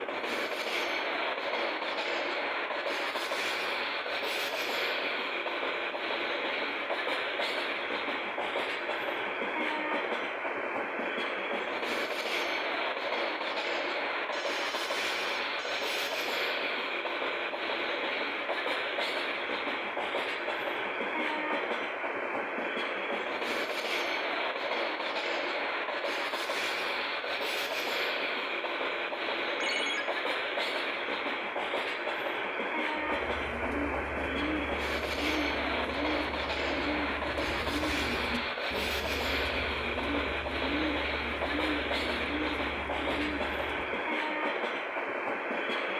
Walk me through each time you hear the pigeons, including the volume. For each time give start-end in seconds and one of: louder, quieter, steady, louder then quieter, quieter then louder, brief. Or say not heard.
33.0-44.0 steady.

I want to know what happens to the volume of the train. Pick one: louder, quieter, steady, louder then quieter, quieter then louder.
steady.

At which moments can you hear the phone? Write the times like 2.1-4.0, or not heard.
14.3-16.1, 29.6-30.1.